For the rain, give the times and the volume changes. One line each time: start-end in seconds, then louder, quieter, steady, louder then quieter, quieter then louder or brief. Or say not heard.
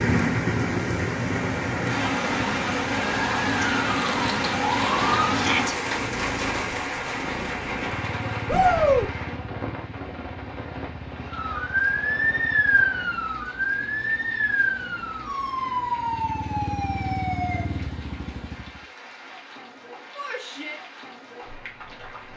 0.0-22.3 quieter.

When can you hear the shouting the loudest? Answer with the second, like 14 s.
9 s.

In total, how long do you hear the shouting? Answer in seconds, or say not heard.
2 s.